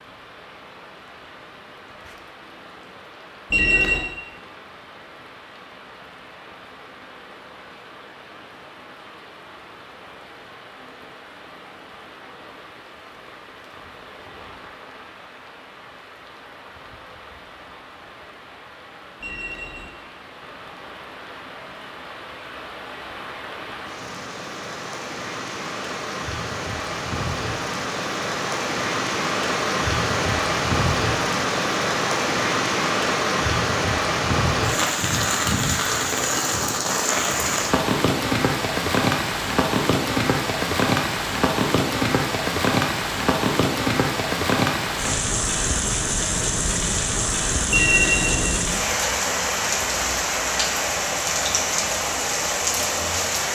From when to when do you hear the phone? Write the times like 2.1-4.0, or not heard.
3.5-4.1, 19.2-19.9, 47.7-48.5.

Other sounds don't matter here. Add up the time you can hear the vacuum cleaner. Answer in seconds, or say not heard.
not heard.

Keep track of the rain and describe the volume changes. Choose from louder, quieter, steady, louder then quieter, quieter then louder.
louder.